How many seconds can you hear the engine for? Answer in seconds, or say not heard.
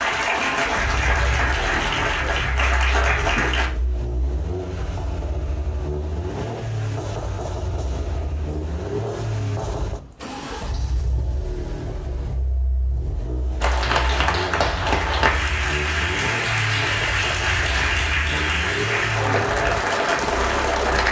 21 s.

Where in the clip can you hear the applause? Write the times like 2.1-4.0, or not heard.
0.0-3.7, 13.6-21.0.